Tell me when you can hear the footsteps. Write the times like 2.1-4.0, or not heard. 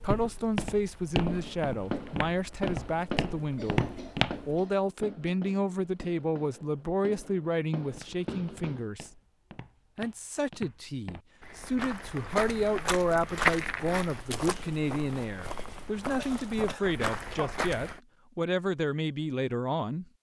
0.0-4.6, 7.8-18.0.